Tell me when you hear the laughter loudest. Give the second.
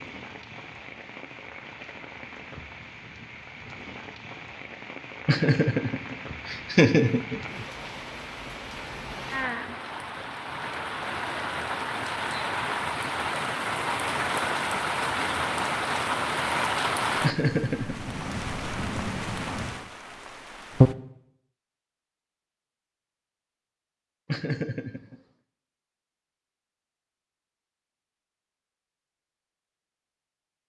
7 s.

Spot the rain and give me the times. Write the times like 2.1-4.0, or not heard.
0.0-20.9.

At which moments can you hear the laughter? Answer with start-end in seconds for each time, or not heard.
5.2-7.6, 17.2-18.1, 24.2-25.2.